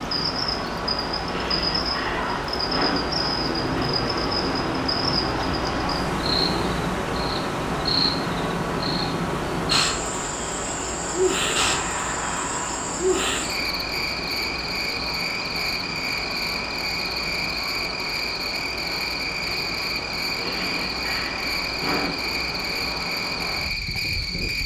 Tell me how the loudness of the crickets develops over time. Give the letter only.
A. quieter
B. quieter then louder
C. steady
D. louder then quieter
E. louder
C.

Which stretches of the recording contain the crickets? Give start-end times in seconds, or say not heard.
0.0-24.6.